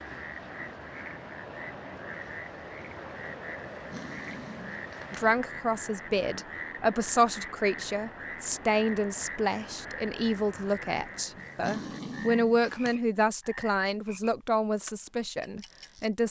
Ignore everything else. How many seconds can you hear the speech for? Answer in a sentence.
The speech can be heard for 11 seconds in total.